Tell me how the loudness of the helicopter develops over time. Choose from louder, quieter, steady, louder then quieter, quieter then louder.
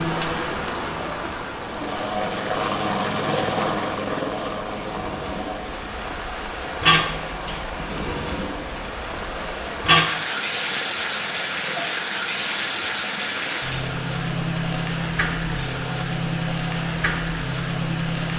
quieter.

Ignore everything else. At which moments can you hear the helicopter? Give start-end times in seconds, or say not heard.
1.5-18.3.